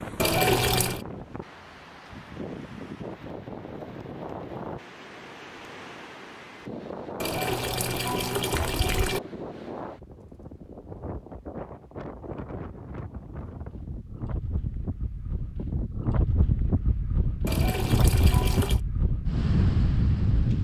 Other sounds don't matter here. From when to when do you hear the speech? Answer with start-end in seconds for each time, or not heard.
not heard.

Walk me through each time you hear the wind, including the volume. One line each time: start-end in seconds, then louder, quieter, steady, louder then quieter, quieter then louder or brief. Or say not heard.
0.0-20.5 louder.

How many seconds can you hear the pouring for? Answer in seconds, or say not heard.
4 s.